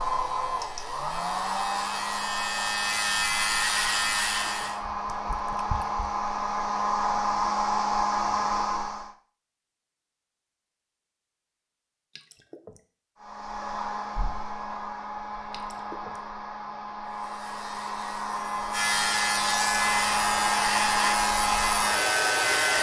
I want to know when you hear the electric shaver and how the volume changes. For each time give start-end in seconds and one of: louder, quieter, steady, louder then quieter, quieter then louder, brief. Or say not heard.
0.0-4.8 louder
17.1-22.7 louder.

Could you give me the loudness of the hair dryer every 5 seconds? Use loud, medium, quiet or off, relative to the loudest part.
medium, loud, medium, medium, loud.